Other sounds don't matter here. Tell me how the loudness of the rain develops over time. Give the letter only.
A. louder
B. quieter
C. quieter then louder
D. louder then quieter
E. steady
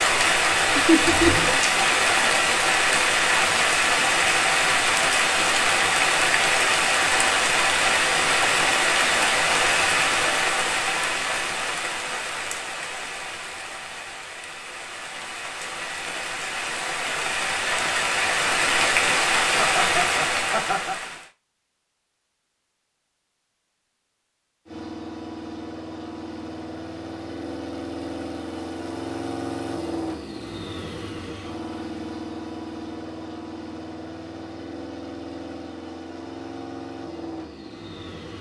C.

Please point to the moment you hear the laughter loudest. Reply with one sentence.
The volume of the laughter peaks at 1 second.